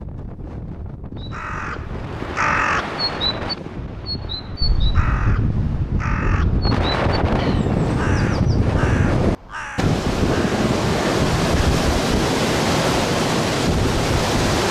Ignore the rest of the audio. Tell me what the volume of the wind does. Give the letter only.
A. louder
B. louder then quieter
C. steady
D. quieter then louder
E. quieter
A.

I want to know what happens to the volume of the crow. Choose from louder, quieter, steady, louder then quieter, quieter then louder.
quieter.